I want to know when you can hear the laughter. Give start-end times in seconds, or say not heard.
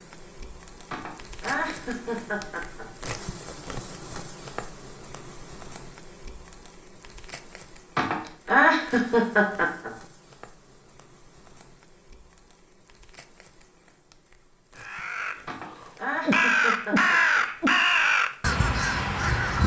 0.9-2.9, 8.0-9.9, 15.4-17.4.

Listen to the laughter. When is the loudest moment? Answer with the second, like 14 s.
9 s.